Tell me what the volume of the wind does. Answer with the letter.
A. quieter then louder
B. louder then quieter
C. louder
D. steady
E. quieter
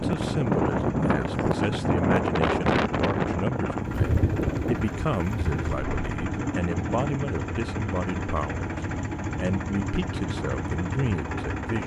E.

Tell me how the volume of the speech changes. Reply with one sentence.
The loudness of the speech stays about the same.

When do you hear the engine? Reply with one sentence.
You can hear the engine from 0.0 to 11.8 s.